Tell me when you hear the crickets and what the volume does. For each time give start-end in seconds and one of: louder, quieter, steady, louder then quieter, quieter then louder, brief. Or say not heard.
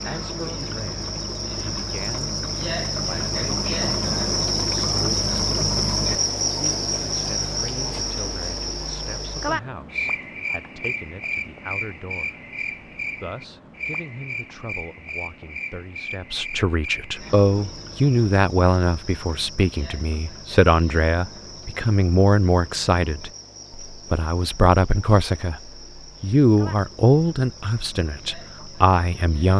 0.0-29.5 quieter.